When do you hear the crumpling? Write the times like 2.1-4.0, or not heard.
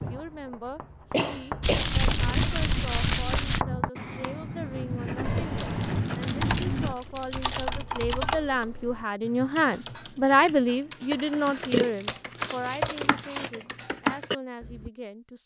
1.6-3.6, 5.5-7.7, 11.6-13.5.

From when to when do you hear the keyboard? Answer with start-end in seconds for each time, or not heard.
5.2-14.9.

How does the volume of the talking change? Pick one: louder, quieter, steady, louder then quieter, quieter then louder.
louder then quieter.